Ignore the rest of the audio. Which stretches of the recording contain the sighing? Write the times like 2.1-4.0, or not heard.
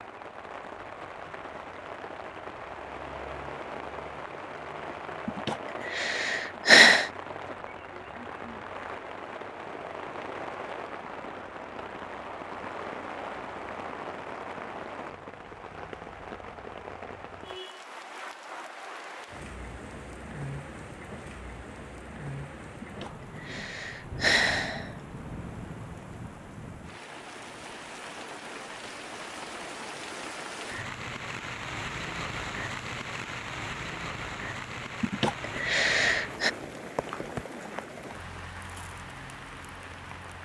5.2-7.1, 22.8-24.9, 35.0-36.5.